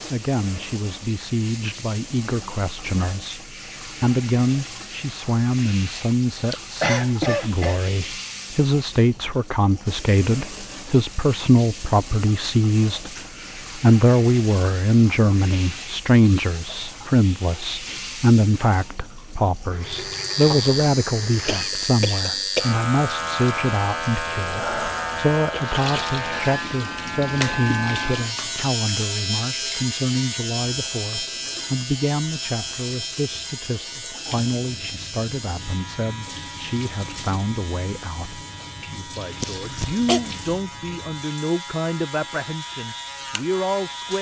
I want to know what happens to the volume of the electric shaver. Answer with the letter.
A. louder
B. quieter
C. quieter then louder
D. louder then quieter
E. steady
B.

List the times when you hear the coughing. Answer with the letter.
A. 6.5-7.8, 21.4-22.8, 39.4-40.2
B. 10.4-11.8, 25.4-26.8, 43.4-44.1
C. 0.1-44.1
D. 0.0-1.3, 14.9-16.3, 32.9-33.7
A.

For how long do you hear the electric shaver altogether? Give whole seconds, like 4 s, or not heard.
24 s.